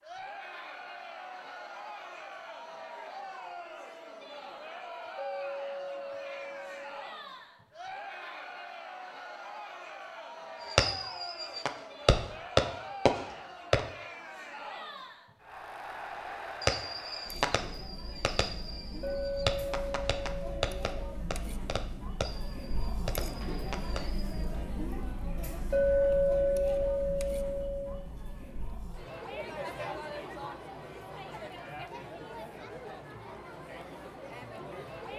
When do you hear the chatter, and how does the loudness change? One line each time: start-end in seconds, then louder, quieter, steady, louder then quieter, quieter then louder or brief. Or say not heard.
0.0-35.1 steady.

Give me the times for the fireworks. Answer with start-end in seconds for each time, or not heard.
10.7-13.8, 16.6-24.3.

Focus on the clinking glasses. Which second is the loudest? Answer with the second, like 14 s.
26 s.